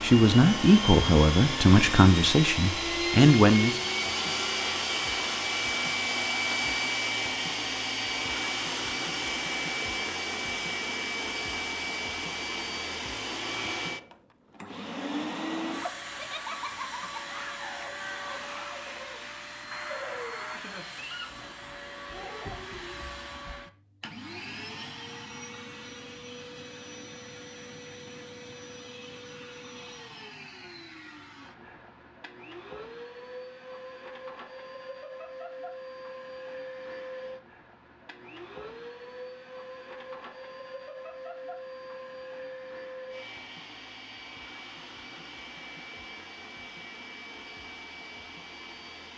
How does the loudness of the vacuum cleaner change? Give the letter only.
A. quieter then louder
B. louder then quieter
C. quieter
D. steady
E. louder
C.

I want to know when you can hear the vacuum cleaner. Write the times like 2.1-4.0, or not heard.
0.0-49.1.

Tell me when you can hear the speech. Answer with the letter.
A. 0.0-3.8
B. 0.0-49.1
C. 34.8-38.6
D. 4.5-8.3
A.